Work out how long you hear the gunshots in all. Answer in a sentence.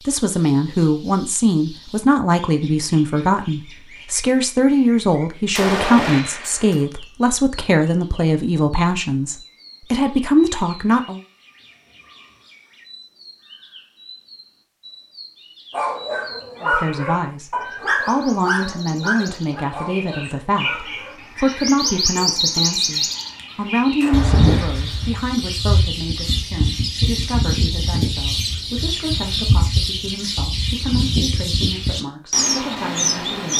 The gunshots can be heard for 3 seconds in total.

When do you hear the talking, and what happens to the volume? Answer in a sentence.
The talking can be heard from 0.1 to 11.2 s, at a steady volume; and from 16.6 to 33.5 s, getting quieter.